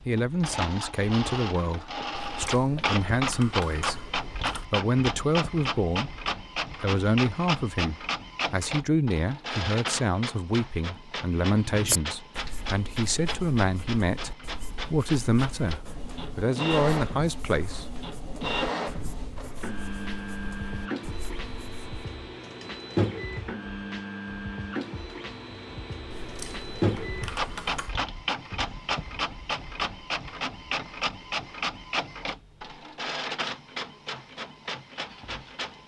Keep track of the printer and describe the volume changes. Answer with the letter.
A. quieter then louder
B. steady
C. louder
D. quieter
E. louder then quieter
B.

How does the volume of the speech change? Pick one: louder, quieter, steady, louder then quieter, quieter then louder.
steady.